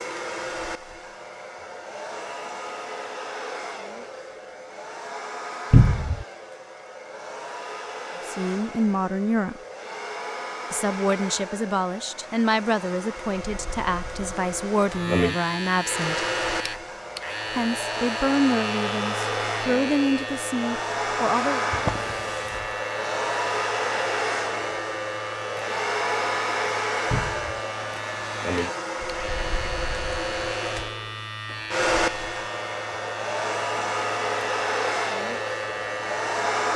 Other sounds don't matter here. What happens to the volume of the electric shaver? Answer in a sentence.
The loudness of the electric shaver stays about the same.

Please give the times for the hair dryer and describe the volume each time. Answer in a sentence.
The hair dryer can be heard from 0.0 to 36.7 s, getting louder.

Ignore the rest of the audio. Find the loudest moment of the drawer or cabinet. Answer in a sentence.
The loudest moment of the drawer or cabinet is at 6 seconds.